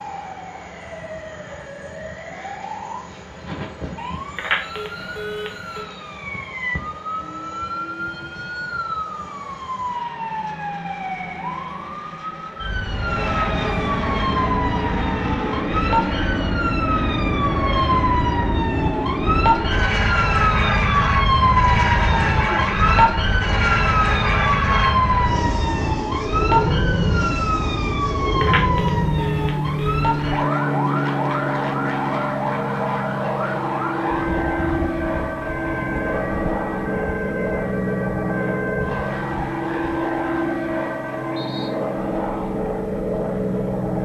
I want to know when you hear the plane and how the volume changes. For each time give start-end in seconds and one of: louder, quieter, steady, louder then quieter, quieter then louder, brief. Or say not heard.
0.0-44.0 louder.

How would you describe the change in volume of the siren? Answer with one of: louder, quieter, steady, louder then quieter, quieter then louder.
louder then quieter.